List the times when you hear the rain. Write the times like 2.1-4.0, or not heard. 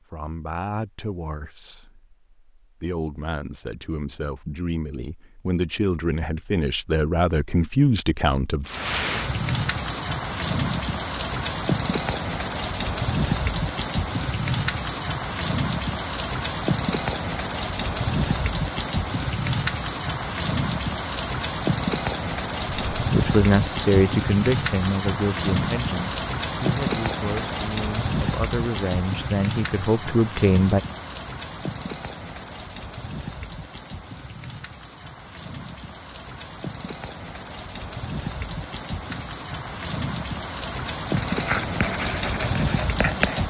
8.7-43.4.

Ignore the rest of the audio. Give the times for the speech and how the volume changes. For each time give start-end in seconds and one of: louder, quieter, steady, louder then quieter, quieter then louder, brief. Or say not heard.
0.1-8.7 louder
22.9-30.8 quieter then louder.